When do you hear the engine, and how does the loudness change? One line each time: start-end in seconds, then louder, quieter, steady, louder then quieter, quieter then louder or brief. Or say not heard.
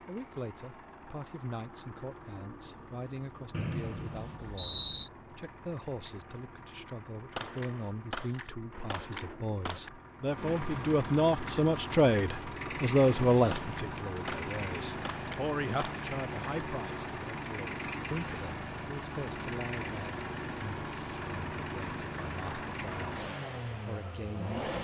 0.0-24.7 louder.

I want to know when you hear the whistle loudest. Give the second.
5 s.